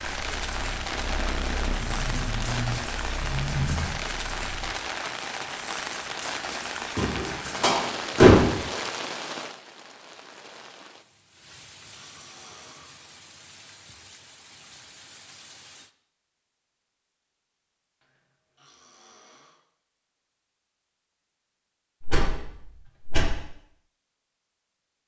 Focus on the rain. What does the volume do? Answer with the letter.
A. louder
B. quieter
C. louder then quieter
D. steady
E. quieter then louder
B.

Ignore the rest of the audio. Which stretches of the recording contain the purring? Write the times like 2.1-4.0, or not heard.
0.0-4.8.